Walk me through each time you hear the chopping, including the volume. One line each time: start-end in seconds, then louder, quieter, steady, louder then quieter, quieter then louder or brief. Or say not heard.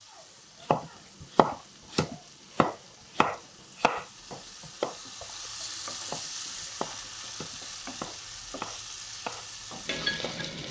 0.6-10.4 quieter.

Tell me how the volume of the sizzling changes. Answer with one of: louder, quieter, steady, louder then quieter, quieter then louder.
louder.